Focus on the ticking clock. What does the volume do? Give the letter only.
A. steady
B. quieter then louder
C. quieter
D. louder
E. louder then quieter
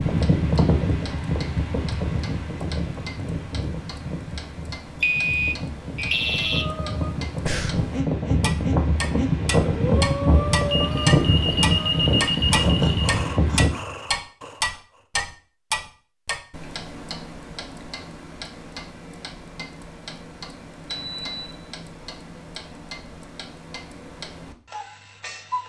E.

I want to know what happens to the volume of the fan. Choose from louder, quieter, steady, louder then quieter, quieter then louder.
quieter then louder.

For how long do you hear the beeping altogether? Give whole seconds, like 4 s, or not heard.
5 s.